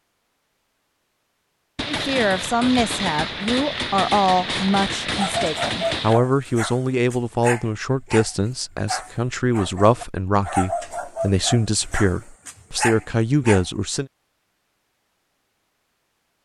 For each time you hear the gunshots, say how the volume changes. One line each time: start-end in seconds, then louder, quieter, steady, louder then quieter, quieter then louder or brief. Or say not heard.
1.8-6.2 steady.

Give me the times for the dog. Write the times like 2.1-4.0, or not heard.
5.1-13.7.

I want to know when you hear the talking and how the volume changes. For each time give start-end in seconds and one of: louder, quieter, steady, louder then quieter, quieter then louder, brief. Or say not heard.
1.9-14.1 steady.